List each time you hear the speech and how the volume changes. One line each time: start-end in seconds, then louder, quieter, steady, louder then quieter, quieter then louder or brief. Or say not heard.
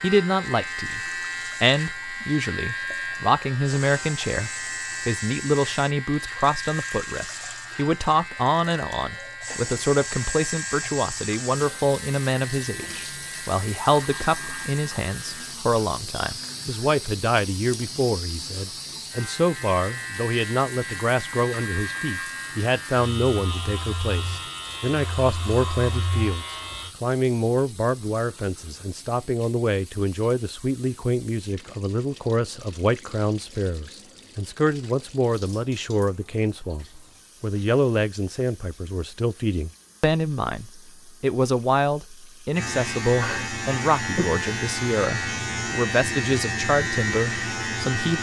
0.0-48.1 steady.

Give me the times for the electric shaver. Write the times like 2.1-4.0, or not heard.
0.0-26.9, 42.5-48.1.